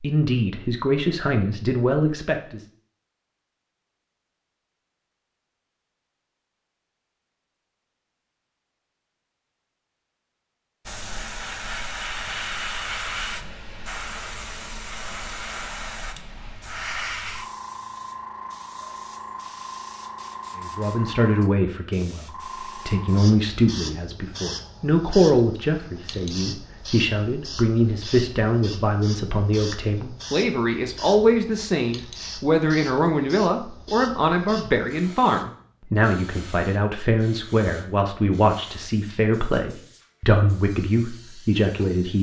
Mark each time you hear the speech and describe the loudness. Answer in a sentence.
You can hear the speech briefly from 0.0 to 2.6 s; and from 20.6 to 42.1 s, at a steady volume.